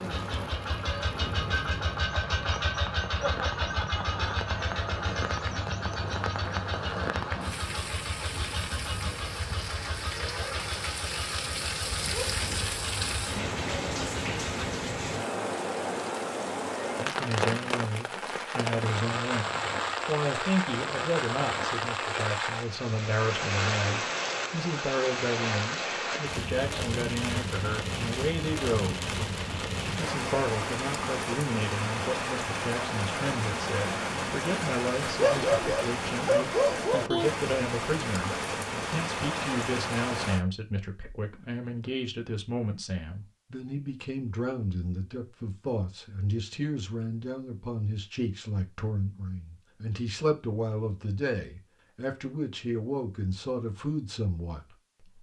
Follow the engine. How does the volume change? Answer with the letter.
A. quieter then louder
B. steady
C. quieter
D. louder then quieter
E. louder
C.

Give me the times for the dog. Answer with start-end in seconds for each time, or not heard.
35.1-37.3.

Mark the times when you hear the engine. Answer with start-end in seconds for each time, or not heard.
0.0-14.6.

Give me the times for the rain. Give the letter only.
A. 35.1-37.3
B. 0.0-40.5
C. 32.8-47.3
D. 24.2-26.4
B.